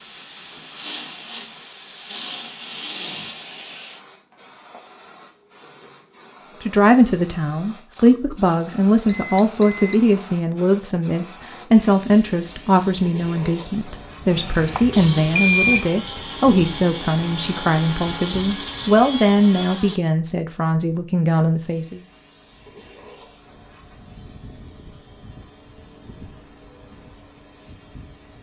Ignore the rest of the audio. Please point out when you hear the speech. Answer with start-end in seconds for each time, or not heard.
6.6-22.0.